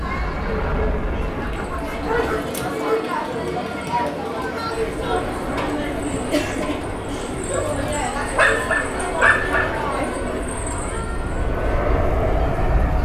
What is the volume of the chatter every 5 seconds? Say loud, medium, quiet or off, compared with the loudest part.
loud, loud, medium.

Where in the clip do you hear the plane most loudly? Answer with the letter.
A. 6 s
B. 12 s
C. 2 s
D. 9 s
B.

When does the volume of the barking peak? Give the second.
9 s.